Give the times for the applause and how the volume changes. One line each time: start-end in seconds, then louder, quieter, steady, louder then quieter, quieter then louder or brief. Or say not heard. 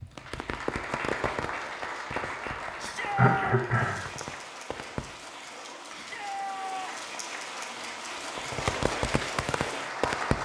0.0-10.4 quieter then louder.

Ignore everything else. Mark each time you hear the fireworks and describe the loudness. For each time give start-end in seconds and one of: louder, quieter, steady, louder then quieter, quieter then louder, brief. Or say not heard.
0.0-5.0 quieter
8.2-10.4 brief.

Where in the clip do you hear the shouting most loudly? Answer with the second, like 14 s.
3 s.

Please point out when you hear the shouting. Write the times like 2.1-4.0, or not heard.
2.8-3.5, 5.9-7.1.